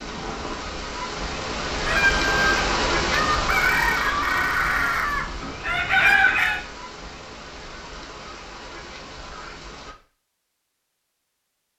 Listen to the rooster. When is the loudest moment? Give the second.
6 s.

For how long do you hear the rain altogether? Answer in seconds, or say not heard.
10 s.